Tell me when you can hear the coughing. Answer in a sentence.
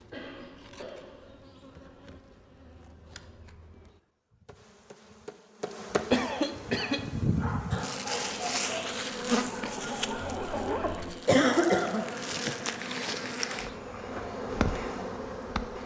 The coughing can be heard from 0.1 to 1.3 s, from 6.1 to 7.0 s and from 11.2 to 12.1 s.